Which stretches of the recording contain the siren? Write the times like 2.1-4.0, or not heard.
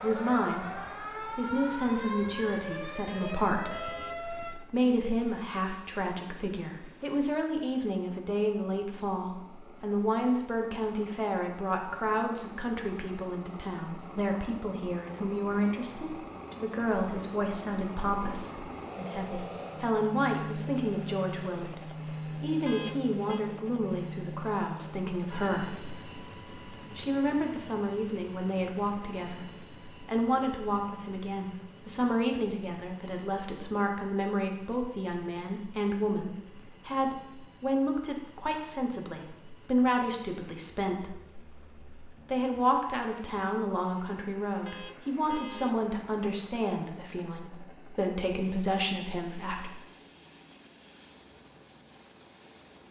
0.0-4.6.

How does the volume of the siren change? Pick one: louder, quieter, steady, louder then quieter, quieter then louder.
steady.